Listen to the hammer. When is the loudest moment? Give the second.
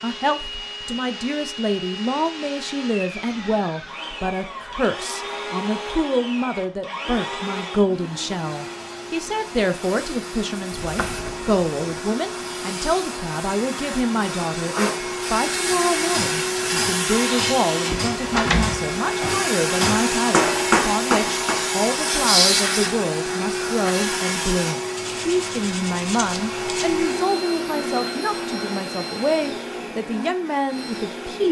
21 s.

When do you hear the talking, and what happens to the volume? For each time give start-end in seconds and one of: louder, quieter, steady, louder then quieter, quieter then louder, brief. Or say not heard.
0.0-31.4 steady.